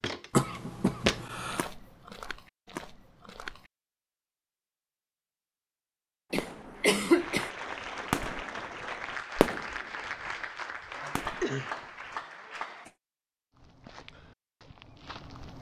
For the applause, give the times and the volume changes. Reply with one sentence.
You can hear the applause from 6.8 to 12.9 s, at a steady volume.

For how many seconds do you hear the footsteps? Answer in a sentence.
The footsteps can be heard for 6 seconds in total.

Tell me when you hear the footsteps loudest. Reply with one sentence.
The volume of the footsteps peaks at 1 second.